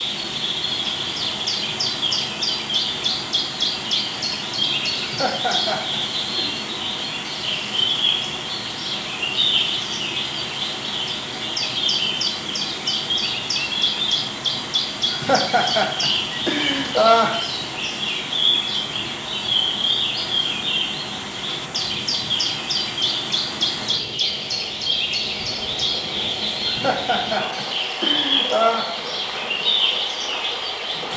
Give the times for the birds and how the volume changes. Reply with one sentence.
You can hear the birds from 0.0 to 31.1 s, at a steady volume.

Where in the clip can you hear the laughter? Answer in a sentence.
You can hear the laughter from 5.0 to 6.5 s, from 15.1 to 17.4 s and from 26.6 to 28.9 s.